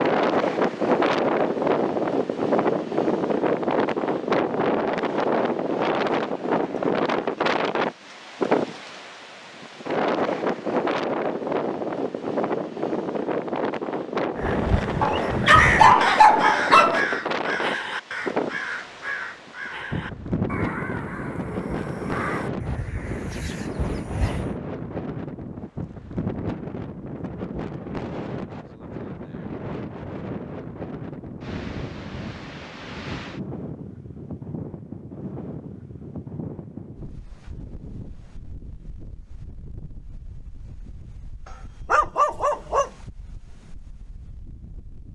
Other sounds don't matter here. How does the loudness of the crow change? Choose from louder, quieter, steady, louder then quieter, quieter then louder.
quieter.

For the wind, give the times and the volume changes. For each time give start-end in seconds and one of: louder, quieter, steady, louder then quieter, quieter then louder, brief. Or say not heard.
0.0-45.1 quieter.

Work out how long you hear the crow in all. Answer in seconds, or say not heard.
10 s.